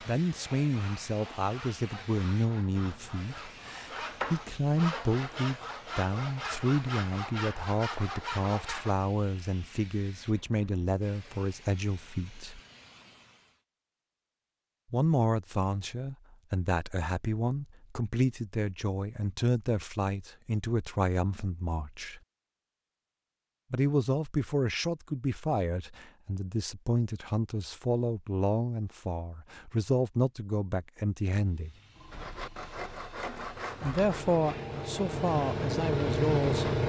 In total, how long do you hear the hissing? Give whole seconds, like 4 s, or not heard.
19 s.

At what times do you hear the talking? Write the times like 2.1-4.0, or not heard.
0.1-12.6, 14.9-22.2, 23.7-31.8, 33.8-36.6.